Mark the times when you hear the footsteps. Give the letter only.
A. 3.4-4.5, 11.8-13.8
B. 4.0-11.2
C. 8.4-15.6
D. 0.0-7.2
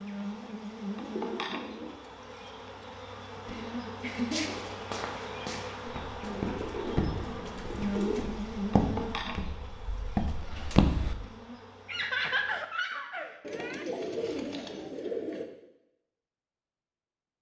B.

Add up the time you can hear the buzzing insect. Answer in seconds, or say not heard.
13 s.